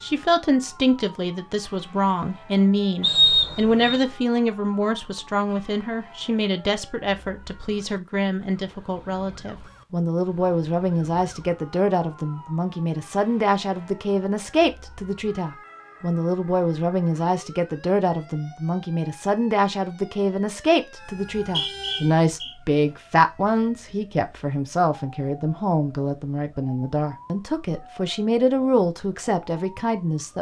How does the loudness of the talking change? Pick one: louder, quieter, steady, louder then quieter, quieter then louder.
steady.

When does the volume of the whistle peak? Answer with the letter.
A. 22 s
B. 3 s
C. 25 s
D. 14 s
B.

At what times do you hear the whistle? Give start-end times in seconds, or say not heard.
3.0-4.0, 21.1-22.6.